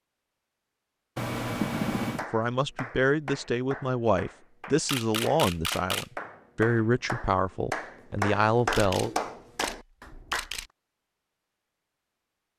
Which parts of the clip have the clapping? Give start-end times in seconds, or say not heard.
2.0-10.5.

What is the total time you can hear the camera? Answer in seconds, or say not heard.
4 s.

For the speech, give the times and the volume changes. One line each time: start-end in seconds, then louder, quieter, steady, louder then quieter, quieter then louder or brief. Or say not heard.
2.3-9.1 steady.